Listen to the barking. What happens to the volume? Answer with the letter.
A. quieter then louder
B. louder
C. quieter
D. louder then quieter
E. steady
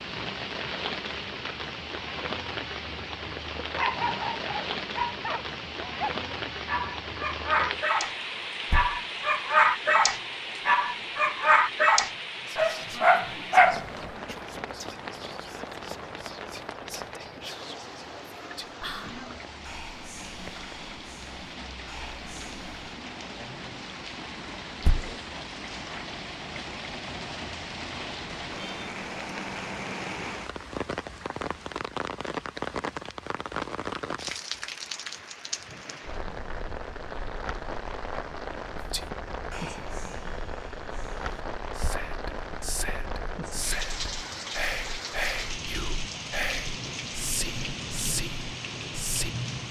B.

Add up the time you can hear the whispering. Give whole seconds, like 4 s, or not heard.
21 s.